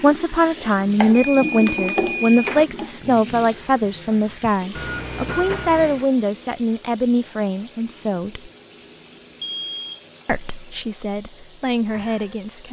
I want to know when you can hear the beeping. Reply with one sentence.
You can hear the beeping from 1.2 to 2.6 s, from 4.8 to 6.0 s and from 9.4 to 10.1 s.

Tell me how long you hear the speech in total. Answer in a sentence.
You can hear the speech for 11 seconds altogether.